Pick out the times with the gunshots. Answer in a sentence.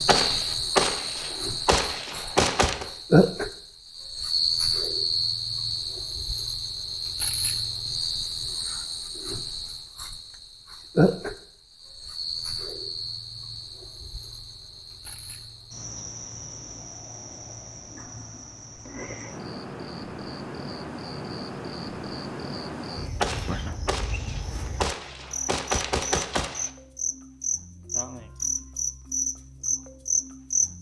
The gunshots can be heard from 0.1 to 2.9 s and from 23.2 to 26.7 s.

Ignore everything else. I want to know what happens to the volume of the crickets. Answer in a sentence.
The loudness of the crickets goes down, then up.